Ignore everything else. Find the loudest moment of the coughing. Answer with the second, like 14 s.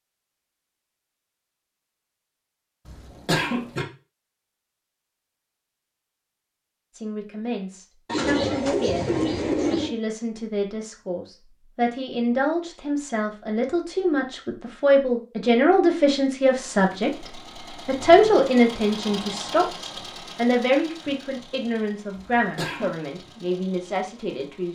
3 s.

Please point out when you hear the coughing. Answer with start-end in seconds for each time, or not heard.
2.9-3.9, 22.1-22.9.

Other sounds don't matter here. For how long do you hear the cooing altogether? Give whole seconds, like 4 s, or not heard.
2 s.